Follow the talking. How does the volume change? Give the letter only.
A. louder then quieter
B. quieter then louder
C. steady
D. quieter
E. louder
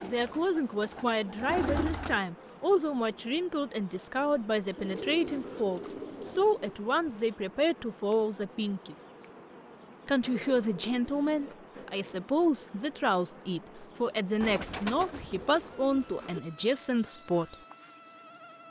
C.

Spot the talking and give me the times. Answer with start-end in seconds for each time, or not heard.
0.0-9.0, 10.1-17.6.